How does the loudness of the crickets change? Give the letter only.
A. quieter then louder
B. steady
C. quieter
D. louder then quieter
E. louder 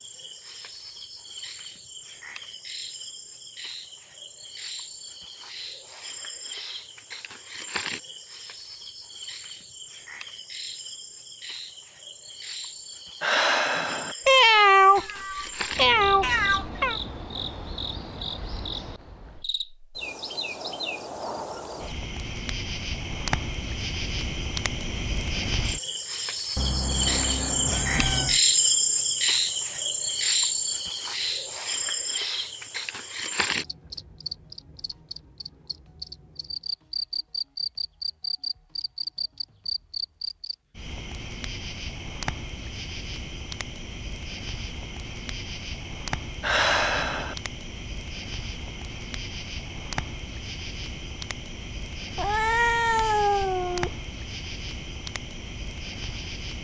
D.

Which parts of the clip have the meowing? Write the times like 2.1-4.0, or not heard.
14.2-16.9, 26.6-28.4, 52.1-54.0.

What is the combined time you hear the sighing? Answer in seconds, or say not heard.
2 s.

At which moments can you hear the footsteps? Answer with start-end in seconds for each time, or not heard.
not heard.